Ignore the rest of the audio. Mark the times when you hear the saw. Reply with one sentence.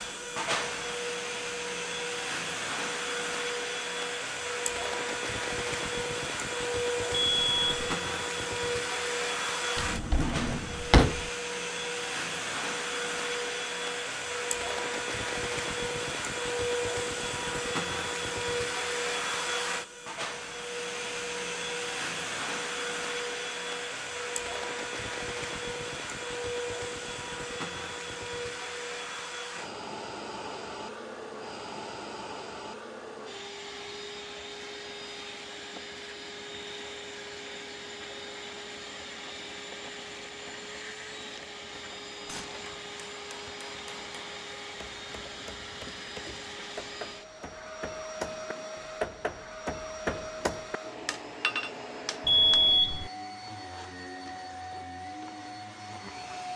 You can't hear the saw here.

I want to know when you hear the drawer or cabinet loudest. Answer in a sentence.
The loudest moment of the drawer or cabinet is at 11 seconds.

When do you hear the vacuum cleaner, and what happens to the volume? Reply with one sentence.
The vacuum cleaner can be heard from 0.0 to 56.5 s, getting quieter.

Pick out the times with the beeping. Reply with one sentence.
The beeping can be heard from 7.3 to 8.0 s and from 52.2 to 53.1 s.